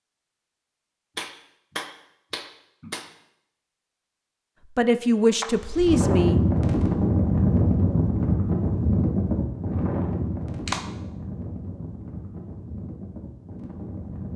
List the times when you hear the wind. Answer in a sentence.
You can hear the wind from 5.5 to 14.3 s.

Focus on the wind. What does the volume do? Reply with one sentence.
The volume of the wind goes down.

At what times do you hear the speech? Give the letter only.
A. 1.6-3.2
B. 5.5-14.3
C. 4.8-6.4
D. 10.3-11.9
C.